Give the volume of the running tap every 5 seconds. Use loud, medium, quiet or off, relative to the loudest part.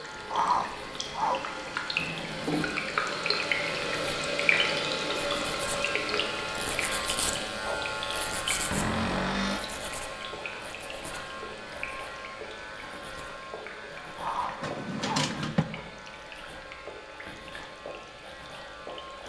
loud, loud, quiet, quiet.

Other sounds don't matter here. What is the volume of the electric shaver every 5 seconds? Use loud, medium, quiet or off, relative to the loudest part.
medium, loud, medium, medium.